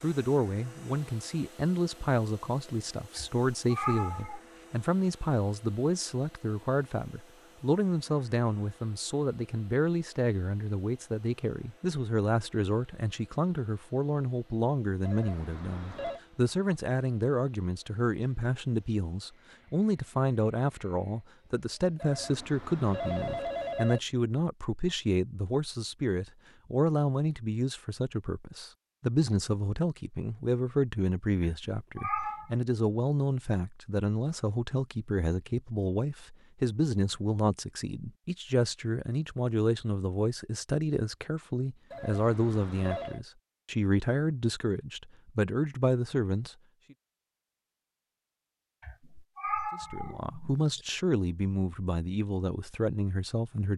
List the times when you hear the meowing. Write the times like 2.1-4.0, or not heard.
3.1-4.4, 31.4-32.5, 48.8-50.9.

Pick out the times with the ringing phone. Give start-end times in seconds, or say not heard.
15.0-16.2, 21.9-24.0, 41.9-43.2.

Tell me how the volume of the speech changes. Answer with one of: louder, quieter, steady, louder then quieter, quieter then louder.
steady.